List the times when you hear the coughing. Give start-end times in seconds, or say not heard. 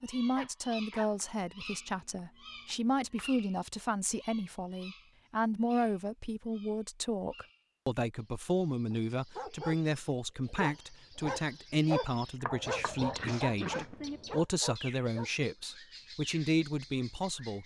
0.3-1.1, 13.2-13.9.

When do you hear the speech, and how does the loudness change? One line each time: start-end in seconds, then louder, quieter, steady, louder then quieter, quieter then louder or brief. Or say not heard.
0.0-17.6 steady.